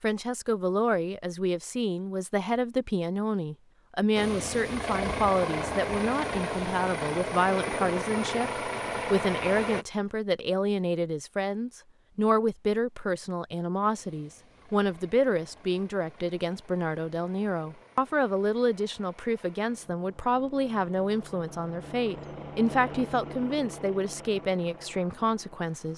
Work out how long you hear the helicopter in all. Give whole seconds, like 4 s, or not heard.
18 s.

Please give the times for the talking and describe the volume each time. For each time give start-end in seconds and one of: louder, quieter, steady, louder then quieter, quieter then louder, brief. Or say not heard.
0.0-25.9 steady.